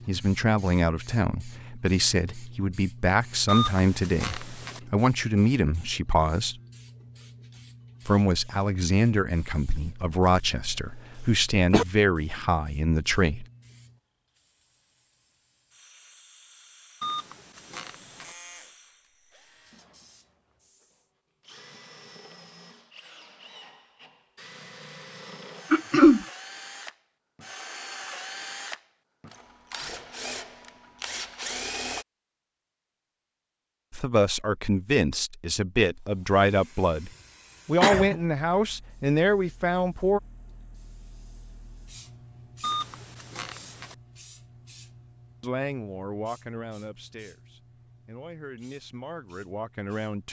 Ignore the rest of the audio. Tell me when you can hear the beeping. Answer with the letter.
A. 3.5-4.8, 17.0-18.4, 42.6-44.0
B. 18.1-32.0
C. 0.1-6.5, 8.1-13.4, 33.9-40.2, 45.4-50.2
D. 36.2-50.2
A.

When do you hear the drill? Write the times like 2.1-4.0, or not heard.
18.1-32.0.